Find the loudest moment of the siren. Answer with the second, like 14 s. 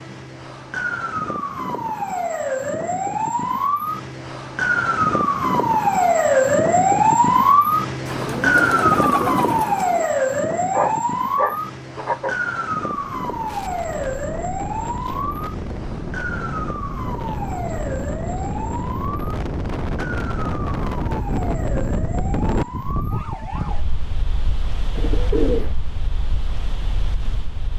7 s.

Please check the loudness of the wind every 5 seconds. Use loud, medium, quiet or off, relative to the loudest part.
off, off, medium, loud, loud, medium.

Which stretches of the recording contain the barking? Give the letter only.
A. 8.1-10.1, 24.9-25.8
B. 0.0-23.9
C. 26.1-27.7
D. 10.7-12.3
D.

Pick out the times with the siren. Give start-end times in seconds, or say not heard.
0.0-23.9.